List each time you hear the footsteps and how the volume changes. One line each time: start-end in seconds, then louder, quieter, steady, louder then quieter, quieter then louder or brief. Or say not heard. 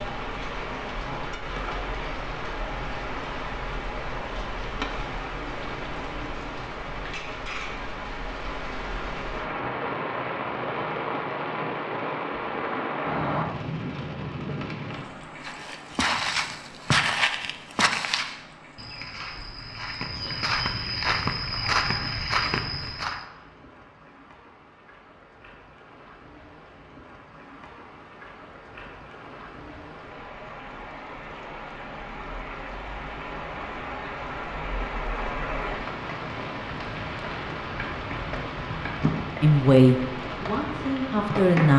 15.4-23.2 quieter then louder.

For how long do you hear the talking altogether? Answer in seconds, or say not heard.
2 s.